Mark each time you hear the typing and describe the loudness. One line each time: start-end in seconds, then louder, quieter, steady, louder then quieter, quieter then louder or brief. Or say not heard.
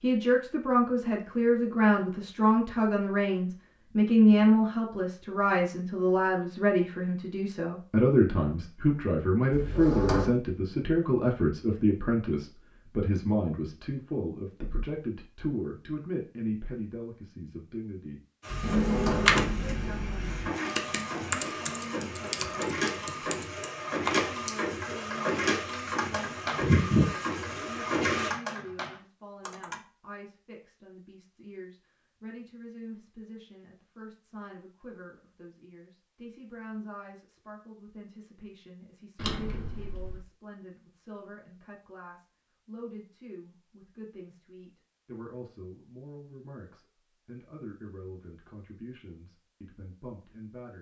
18.6-29.8 quieter.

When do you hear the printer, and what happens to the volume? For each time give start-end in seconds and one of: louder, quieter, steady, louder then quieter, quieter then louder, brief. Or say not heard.
18.4-28.3 louder.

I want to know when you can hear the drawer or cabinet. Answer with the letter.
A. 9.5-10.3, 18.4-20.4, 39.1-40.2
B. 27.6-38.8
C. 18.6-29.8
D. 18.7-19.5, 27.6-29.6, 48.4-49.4
A.